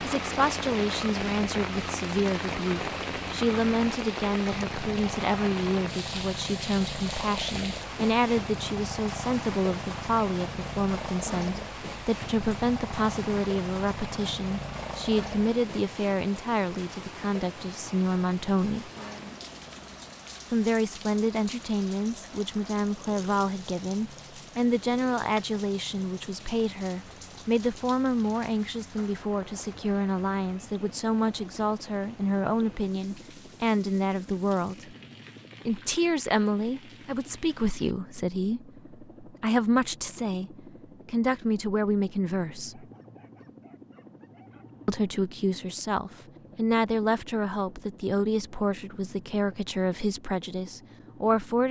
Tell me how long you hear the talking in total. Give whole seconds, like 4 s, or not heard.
47 s.